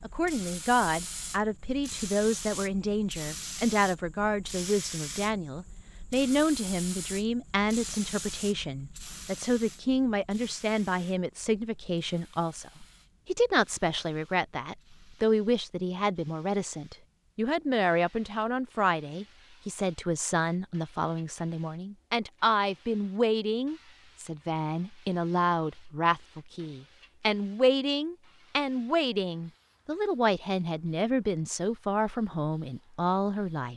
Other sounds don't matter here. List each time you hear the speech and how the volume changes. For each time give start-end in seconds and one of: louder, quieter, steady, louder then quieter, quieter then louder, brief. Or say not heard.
0.0-33.7 steady.